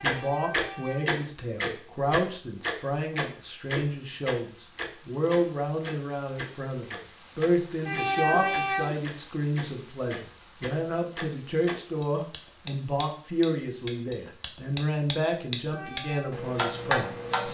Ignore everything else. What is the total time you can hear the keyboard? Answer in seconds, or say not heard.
not heard.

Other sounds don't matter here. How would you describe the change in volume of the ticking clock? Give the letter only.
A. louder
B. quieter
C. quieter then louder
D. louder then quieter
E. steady
C.